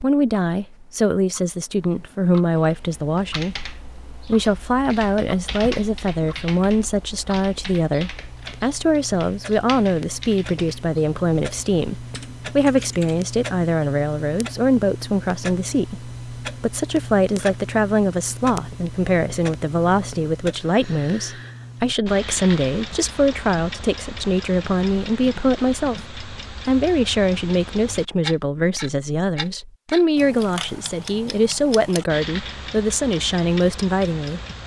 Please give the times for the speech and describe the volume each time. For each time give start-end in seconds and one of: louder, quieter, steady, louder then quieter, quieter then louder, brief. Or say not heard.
0.0-34.4 steady.